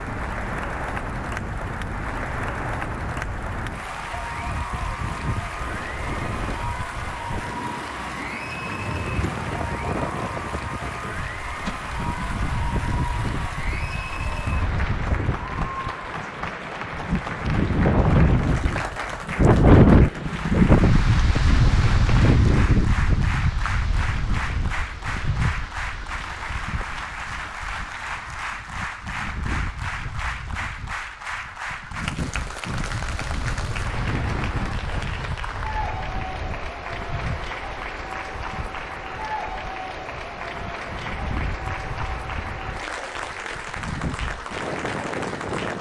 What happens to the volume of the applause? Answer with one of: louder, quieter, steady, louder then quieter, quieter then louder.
steady.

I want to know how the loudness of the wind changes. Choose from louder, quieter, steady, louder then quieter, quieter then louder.
louder then quieter.